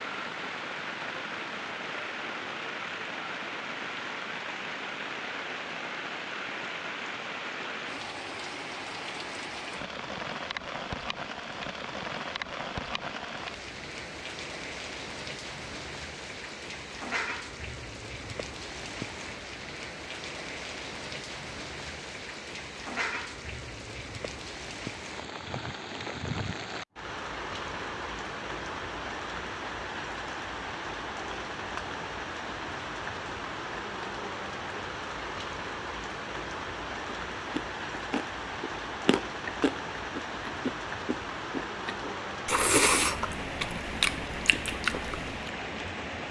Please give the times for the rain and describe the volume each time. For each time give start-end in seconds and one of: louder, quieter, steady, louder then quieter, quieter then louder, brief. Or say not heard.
0.0-46.2 steady.